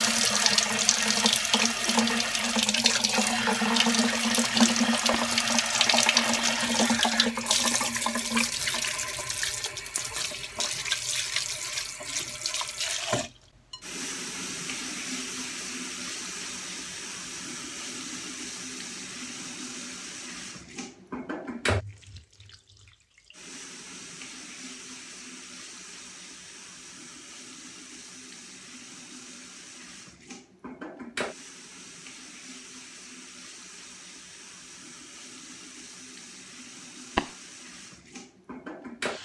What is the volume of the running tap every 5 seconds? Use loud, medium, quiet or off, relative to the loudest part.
loud, loud, medium, quiet, quiet, quiet, quiet, quiet.